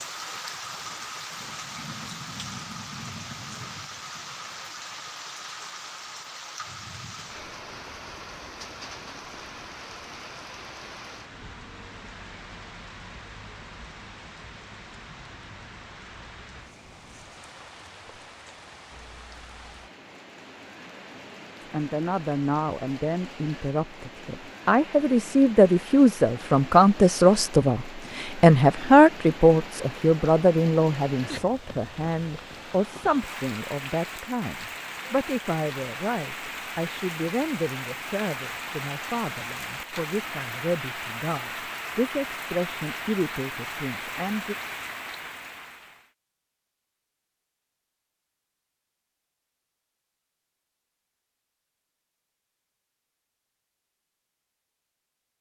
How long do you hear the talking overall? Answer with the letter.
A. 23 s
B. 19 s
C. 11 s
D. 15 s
A.